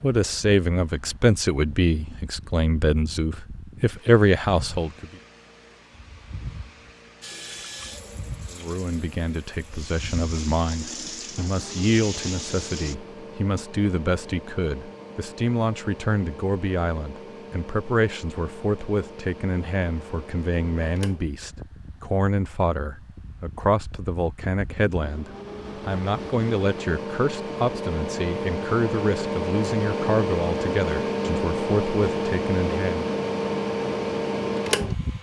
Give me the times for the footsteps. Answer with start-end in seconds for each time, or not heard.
not heard.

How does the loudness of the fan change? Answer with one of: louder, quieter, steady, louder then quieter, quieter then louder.
louder.